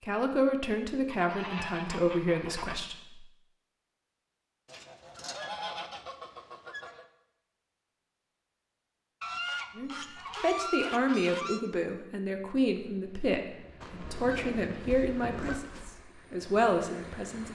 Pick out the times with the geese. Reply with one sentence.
You can hear the geese from 1.1 to 2.8 s, from 4.7 to 7.0 s, from 9.2 to 11.6 s and from 13.8 to 16.1 s.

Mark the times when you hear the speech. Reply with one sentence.
The speech can be heard from 0.0 to 3.2 s and from 9.8 to 17.5 s.